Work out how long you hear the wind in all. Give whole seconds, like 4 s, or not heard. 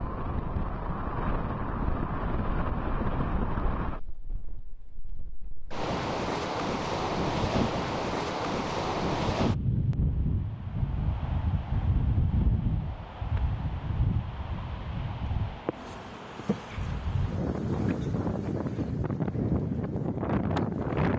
21 s.